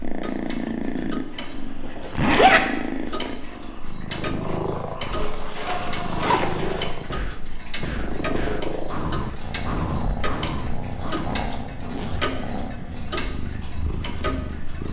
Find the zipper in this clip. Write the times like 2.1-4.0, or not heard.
2.1-2.6, 5.2-6.8, 10.8-12.4.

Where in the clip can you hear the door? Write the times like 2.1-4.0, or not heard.
not heard.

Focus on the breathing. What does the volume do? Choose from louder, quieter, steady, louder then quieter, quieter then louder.
louder.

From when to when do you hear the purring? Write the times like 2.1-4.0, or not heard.
0.0-14.8.